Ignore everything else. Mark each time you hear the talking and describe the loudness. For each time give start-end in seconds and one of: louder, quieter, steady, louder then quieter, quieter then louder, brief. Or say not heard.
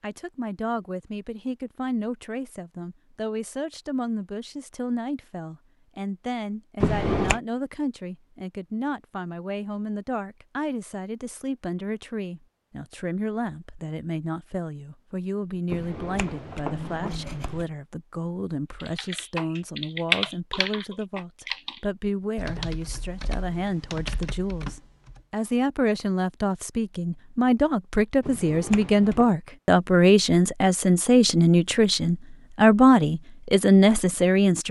0.0-34.6 louder.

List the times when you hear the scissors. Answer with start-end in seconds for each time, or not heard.
6.8-7.3, 15.7-17.6, 28.2-29.2.